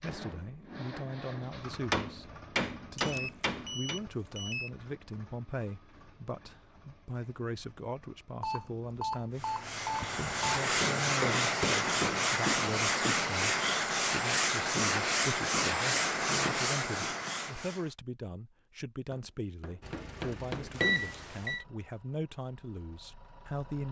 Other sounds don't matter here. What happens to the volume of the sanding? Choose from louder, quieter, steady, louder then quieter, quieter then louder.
steady.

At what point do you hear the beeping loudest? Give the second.
21 s.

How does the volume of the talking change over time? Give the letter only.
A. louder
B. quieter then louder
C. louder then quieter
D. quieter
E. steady
E.